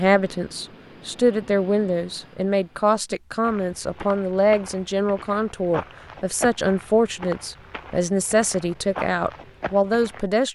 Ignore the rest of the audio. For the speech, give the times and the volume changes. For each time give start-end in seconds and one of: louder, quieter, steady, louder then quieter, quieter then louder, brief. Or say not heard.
0.0-10.5 steady.